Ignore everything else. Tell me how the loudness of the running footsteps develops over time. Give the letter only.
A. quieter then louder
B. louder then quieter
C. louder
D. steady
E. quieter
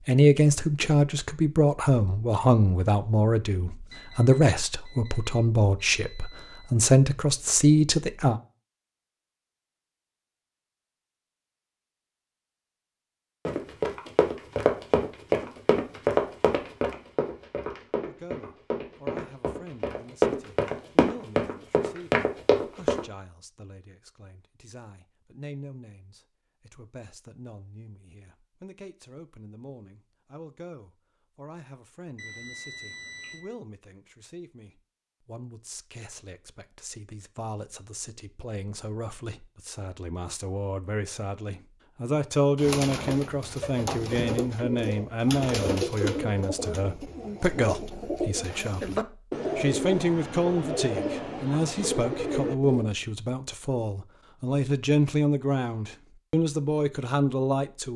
A.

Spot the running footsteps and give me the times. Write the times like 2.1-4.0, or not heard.
13.4-23.1.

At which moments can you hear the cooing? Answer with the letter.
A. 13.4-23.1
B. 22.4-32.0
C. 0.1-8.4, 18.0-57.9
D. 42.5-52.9
D.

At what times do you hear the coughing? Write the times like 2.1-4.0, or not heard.
not heard.